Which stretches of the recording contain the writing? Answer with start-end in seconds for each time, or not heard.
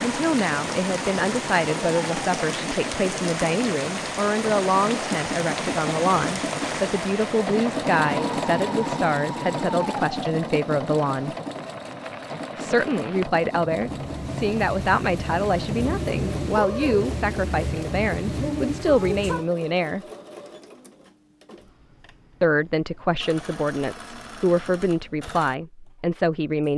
not heard.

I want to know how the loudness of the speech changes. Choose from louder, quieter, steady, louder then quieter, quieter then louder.
steady.